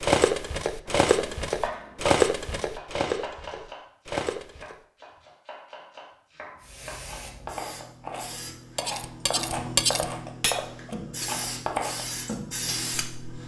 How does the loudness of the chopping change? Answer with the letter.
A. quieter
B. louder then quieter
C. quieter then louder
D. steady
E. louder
C.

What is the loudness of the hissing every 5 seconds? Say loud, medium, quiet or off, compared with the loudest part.
off, medium, loud.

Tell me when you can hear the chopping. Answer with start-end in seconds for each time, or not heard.
0.8-12.0.